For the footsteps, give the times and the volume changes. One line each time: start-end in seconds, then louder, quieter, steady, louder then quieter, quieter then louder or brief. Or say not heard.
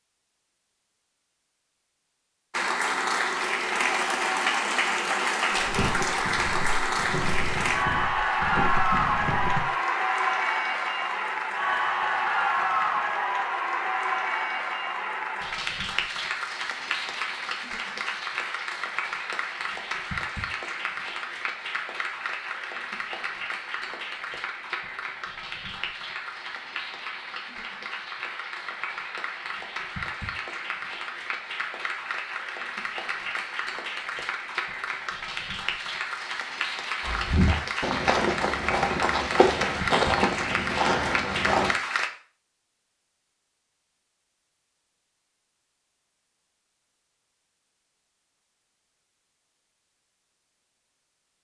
5.5-9.7 steady
37.0-41.7 steady.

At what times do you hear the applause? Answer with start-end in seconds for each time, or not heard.
2.5-42.1.